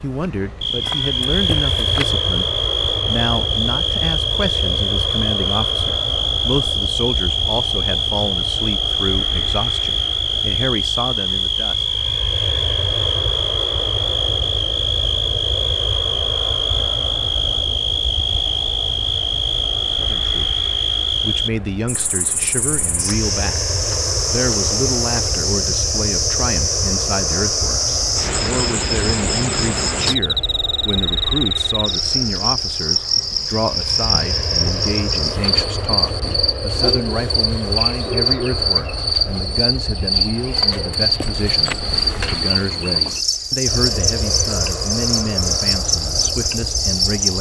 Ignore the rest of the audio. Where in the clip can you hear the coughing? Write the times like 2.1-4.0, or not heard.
not heard.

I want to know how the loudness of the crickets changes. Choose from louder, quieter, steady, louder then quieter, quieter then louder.
steady.